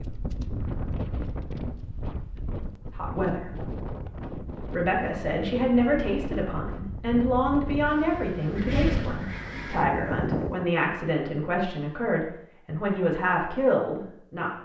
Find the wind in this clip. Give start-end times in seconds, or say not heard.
0.0-10.7.